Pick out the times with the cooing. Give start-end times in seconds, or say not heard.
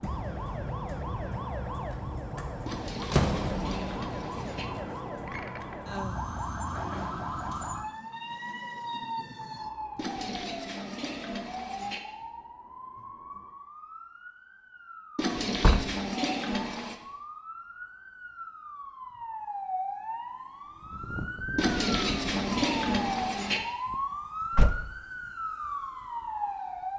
2.6-4.7, 9.9-12.0, 15.2-16.9, 21.6-23.6.